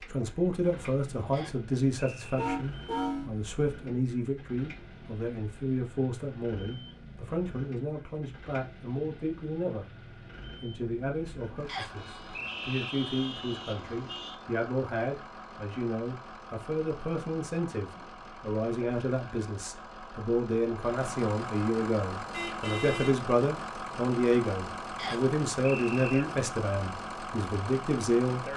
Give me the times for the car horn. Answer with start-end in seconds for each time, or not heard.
2.4-3.3, 11.9-14.3, 22.3-23.1.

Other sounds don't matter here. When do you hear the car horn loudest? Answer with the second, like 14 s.
3 s.